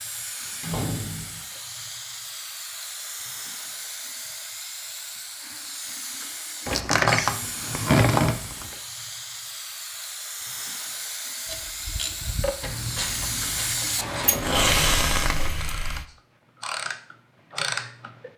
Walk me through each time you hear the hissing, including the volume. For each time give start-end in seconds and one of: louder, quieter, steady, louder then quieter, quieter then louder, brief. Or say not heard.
0.0-16.1 louder.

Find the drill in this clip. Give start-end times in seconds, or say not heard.
not heard.